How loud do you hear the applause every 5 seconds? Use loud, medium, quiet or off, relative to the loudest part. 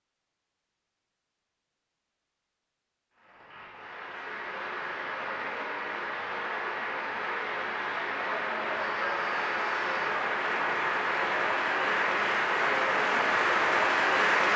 quiet, medium, loud.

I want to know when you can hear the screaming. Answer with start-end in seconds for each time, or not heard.
8.9-10.2.